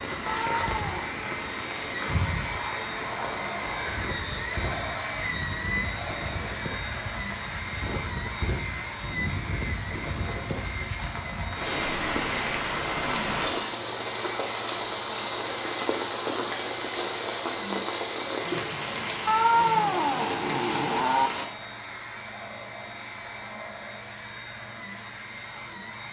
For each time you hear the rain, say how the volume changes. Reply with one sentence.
The rain can be heard from 0.0 to 21.4 s, getting louder.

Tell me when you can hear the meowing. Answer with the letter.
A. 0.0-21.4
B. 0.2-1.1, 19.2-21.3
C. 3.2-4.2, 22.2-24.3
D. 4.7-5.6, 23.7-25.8
B.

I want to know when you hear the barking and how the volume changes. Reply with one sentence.
The barking can't be heard in this clip.